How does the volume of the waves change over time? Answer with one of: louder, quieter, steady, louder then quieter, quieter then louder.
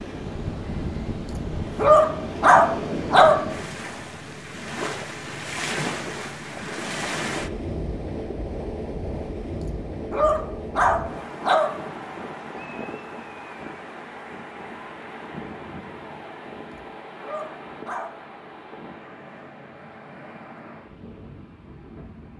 quieter.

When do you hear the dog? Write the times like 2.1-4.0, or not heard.
1.3-3.4, 9.6-11.7, 16.7-18.1.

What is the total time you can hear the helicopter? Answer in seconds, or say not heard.
not heard.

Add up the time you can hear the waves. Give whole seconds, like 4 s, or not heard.
22 s.